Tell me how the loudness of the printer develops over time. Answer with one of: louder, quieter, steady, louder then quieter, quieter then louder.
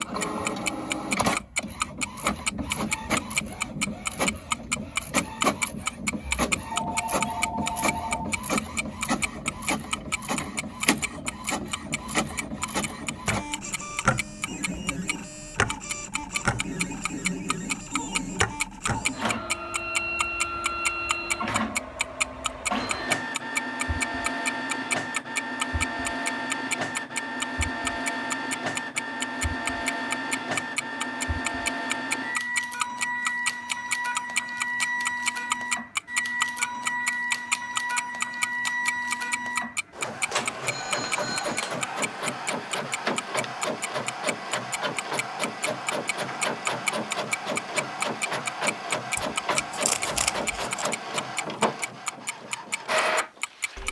steady.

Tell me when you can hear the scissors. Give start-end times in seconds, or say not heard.
49.1-50.9.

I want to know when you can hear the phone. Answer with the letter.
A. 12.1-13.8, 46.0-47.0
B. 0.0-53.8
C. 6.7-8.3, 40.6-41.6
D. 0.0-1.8
C.